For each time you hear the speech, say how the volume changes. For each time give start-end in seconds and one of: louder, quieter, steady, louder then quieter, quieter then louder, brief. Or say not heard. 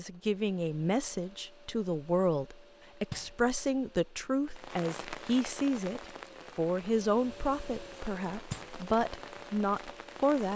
0.0-10.5 steady.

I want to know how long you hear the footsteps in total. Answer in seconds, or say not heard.
not heard.